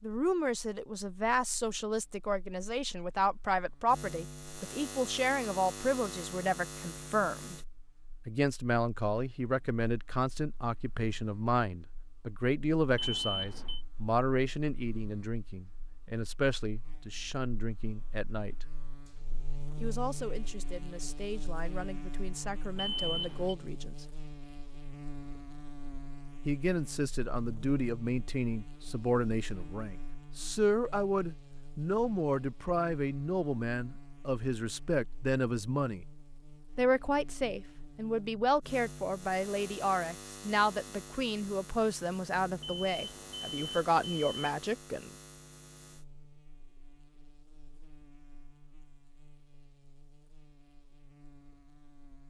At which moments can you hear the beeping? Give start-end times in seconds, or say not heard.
12.9-13.8, 22.8-23.6, 42.6-44.5.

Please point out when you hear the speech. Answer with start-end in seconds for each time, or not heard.
0.0-7.6, 8.2-18.6, 19.8-24.1, 26.4-36.0, 36.8-45.1.